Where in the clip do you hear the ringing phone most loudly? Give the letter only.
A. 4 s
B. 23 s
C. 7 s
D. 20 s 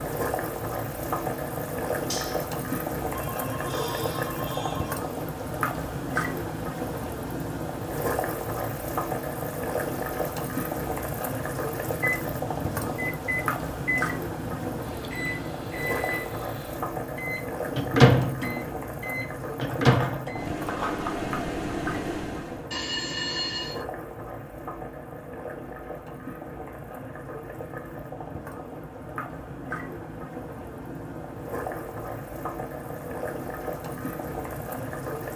B.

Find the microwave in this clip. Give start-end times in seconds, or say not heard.
12.0-22.6.